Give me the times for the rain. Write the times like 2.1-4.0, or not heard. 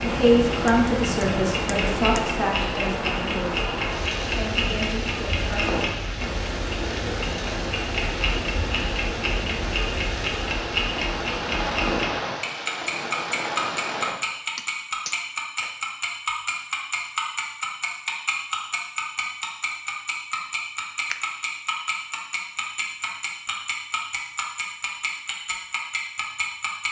0.0-14.2.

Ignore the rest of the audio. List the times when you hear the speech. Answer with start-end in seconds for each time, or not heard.
0.0-3.6, 4.3-5.5.